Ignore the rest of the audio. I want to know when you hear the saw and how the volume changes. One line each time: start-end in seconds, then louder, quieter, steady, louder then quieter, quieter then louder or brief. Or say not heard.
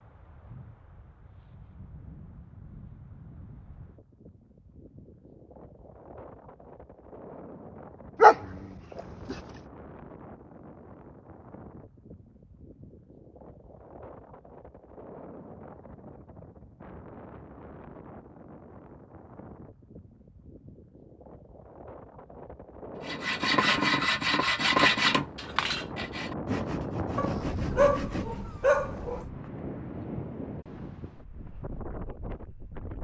23.1-28.4 quieter.